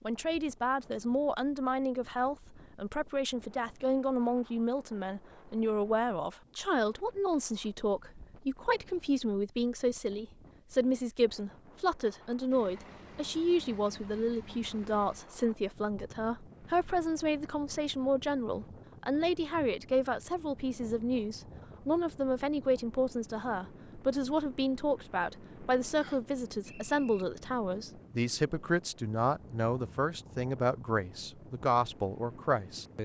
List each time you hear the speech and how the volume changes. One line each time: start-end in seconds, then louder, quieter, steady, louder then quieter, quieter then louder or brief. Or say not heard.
0.0-33.0 steady.